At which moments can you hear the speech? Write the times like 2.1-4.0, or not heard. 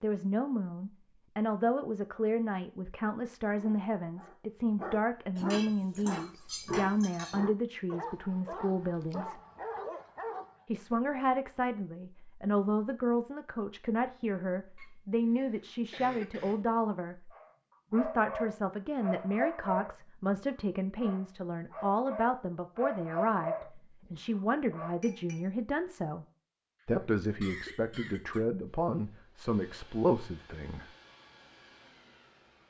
0.0-9.4, 10.7-17.3, 17.9-26.2, 26.9-30.9.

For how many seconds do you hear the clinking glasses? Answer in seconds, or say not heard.
2 s.